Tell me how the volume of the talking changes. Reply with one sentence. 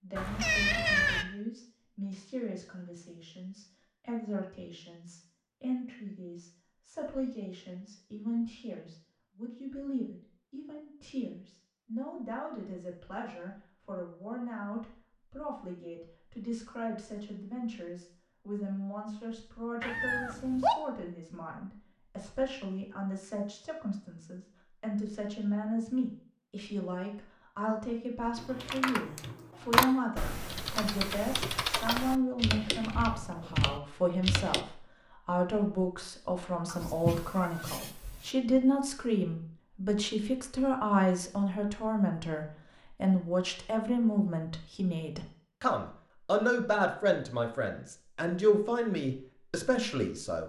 The loudness of the talking goes up.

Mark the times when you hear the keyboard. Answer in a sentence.
The keyboard can be heard from 28.4 to 34.6 s.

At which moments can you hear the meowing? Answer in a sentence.
The meowing can be heard from 0.1 to 1.2 s, from 19.8 to 20.8 s and from 36.6 to 38.3 s.